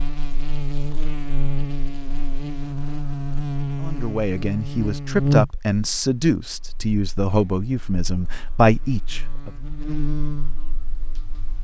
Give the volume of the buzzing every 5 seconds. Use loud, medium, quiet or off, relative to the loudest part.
loud, loud, medium.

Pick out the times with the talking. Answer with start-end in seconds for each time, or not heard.
3.8-9.5.